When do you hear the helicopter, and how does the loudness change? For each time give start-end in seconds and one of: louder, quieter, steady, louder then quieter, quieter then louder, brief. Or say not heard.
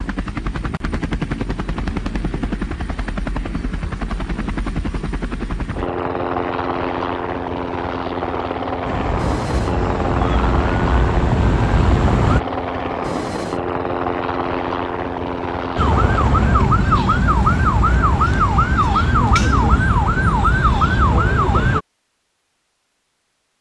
0.0-16.6 steady.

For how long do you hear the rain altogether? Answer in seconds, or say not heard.
not heard.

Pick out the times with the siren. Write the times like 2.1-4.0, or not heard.
8.8-12.4, 15.8-21.8.